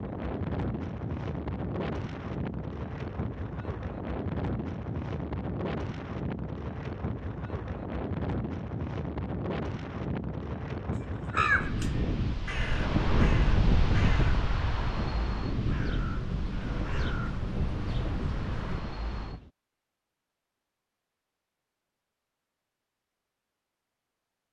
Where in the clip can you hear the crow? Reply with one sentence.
You can hear the crow from 11.3 to 18.8 s.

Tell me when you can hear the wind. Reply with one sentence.
You can hear the wind from 0.0 to 19.5 s.